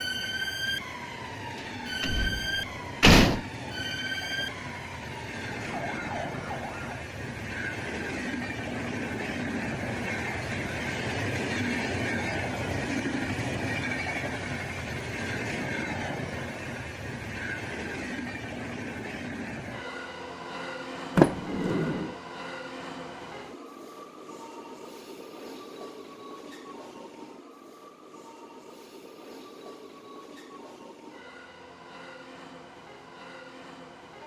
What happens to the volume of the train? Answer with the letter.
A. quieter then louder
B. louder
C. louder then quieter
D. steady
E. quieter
C.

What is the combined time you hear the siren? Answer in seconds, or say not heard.
7 s.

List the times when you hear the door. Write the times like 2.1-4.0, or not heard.
2.0-3.5, 21.1-22.1.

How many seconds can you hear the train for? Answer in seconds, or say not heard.
34 s.